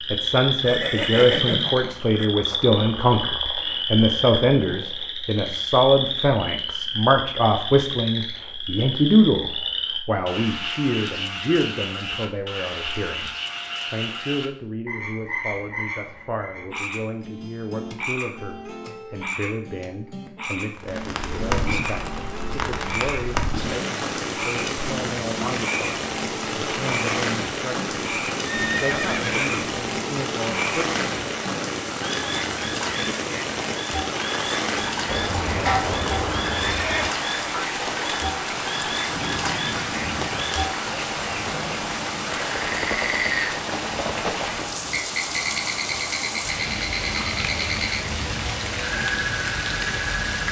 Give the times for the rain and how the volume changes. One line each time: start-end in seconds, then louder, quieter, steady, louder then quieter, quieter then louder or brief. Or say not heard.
20.8-50.4 steady.